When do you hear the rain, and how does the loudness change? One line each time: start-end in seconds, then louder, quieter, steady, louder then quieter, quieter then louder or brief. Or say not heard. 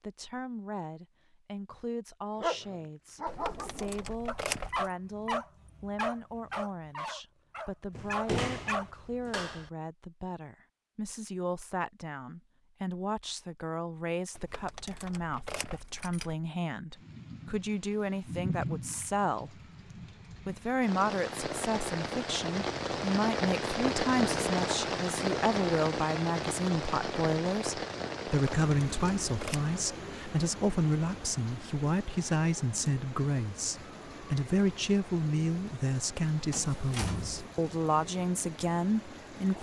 16.9-39.5 louder then quieter.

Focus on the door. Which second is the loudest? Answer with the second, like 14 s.
8 s.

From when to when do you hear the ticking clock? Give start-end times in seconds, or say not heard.
not heard.